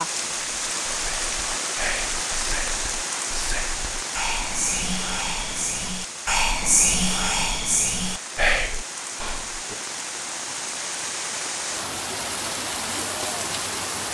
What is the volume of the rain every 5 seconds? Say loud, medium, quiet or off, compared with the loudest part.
loud, medium, loud.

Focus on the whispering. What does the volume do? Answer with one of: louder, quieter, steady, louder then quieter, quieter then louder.
louder.